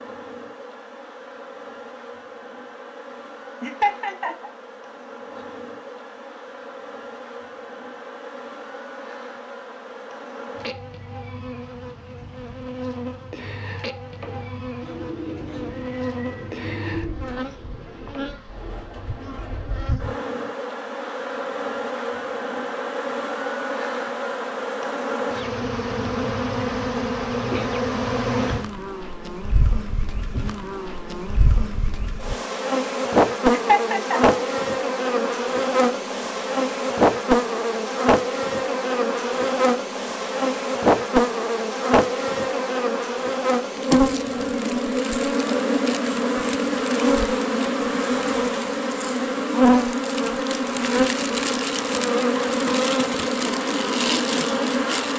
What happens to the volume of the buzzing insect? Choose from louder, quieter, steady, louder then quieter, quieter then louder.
louder.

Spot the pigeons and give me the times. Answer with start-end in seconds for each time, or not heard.
14.2-19.9.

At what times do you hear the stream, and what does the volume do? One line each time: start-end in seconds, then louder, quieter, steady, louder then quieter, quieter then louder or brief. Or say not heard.
not heard.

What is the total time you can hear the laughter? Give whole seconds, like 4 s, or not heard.
2 s.